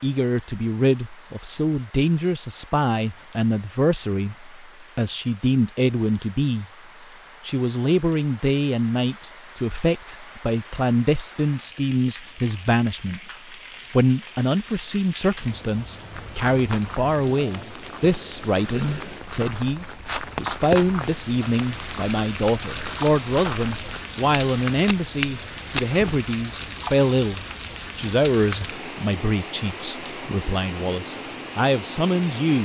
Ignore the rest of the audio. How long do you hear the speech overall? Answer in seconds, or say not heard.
31 s.